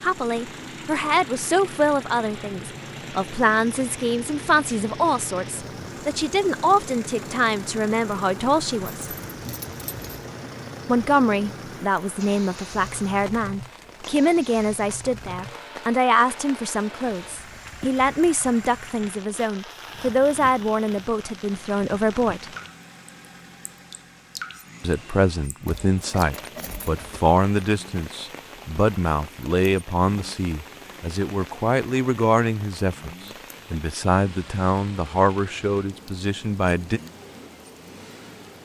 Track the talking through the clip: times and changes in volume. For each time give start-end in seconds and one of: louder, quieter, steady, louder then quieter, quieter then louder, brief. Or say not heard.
0.0-9.1 steady
10.8-22.4 steady
24.8-37.0 steady.